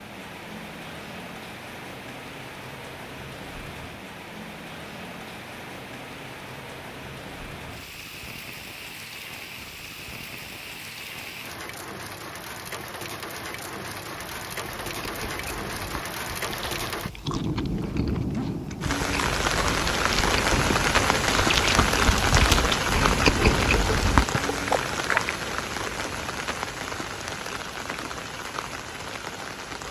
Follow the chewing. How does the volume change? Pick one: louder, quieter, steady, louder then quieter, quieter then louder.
louder.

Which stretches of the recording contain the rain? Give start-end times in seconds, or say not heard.
0.0-29.8.